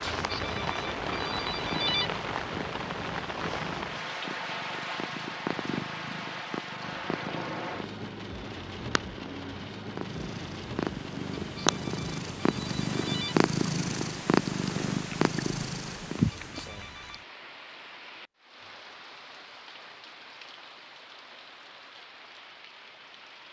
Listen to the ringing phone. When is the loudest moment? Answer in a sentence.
The loudest moment of the ringing phone is at 2 seconds.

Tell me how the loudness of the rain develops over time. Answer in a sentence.
The loudness of the rain goes down.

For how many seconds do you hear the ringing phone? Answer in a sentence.
You can hear the ringing phone for 5 seconds altogether.